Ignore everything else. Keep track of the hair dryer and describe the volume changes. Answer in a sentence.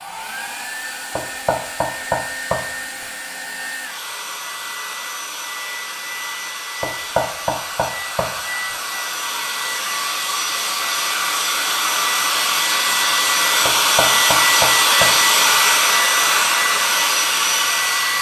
The loudness of the hair dryer goes up.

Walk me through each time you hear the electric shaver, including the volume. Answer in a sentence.
You can't hear the electric shaver here.